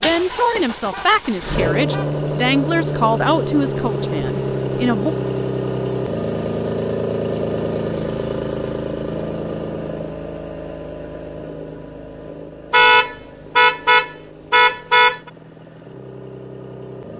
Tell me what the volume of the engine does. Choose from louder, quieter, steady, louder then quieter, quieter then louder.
quieter.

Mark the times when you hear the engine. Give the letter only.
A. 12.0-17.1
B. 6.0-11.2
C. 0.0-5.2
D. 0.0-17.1
D.